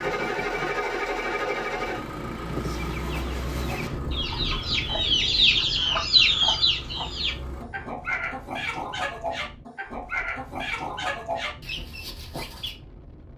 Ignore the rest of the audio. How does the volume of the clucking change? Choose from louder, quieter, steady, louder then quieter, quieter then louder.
louder then quieter.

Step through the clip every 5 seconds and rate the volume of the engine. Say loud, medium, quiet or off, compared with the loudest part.
loud, quiet, off.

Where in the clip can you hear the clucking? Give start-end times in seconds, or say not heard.
2.5-12.8.